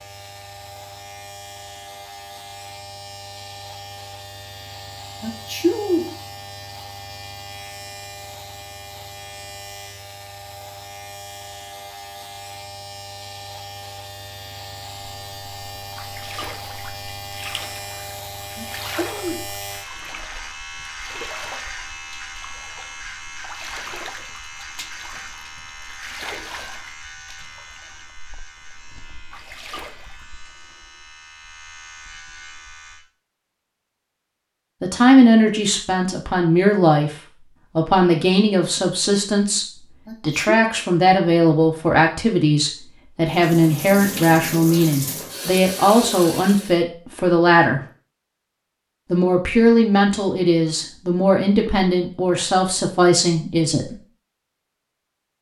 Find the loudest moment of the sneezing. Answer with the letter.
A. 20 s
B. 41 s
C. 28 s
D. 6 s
D.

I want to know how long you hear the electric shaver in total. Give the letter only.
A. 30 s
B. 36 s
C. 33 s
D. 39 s
C.